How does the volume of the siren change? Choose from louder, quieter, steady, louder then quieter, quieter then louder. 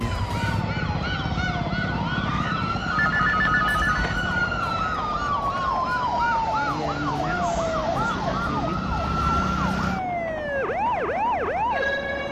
steady.